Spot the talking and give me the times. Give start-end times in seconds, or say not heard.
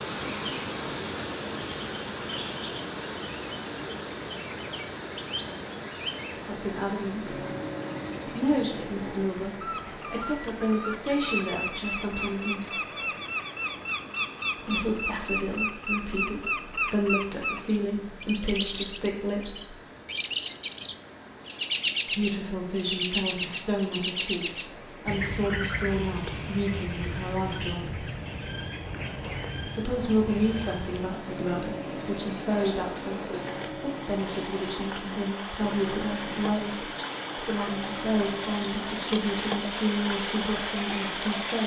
6.4-7.3, 8.2-12.8, 14.6-19.8, 22.1-28.1, 29.6-41.6.